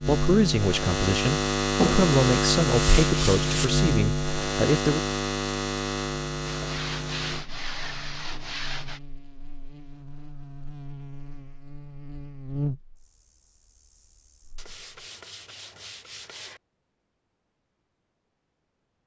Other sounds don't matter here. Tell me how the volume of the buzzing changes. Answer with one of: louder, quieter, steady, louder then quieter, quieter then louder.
quieter then louder.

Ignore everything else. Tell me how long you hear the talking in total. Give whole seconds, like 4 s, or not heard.
5 s.